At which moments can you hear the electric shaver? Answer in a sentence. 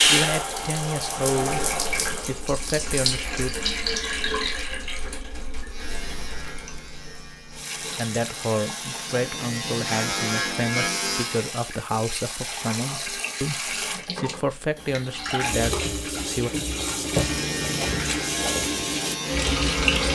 You can hear the electric shaver from 5.7 to 11.4 s and from 17.1 to 20.1 s.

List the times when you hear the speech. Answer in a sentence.
The speech can be heard from 0.1 to 3.5 s and from 7.8 to 16.5 s.